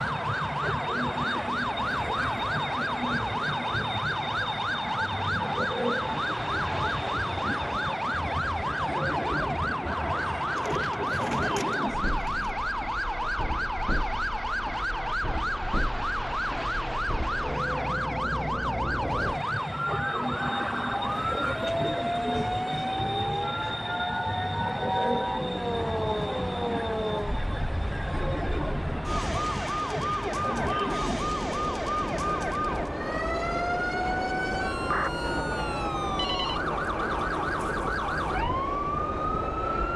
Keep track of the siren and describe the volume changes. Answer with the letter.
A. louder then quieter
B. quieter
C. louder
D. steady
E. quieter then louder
D.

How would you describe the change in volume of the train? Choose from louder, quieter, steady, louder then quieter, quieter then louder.
steady.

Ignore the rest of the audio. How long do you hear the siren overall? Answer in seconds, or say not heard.
40 s.